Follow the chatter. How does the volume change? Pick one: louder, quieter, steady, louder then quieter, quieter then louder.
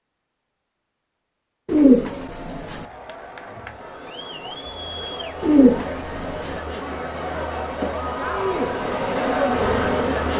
louder.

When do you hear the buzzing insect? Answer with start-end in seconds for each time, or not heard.
8.2-10.3.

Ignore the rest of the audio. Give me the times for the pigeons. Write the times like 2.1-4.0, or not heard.
1.6-2.9, 5.4-6.6.